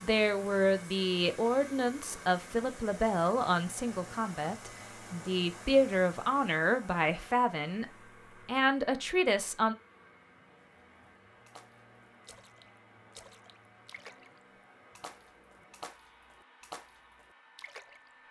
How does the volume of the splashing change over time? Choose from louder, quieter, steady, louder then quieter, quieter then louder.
louder.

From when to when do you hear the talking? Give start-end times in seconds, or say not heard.
0.0-7.8, 8.4-9.8.